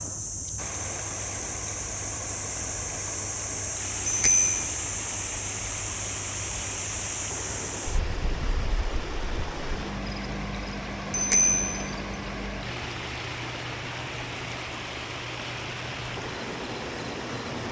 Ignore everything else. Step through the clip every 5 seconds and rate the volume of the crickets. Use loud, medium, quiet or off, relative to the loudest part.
loud, loud, medium, medium.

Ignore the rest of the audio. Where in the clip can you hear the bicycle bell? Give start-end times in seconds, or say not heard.
4.0-4.7, 11.1-11.9.